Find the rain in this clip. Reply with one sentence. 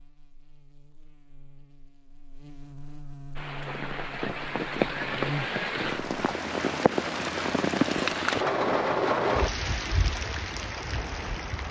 The rain can be heard from 3.4 to 11.6 s.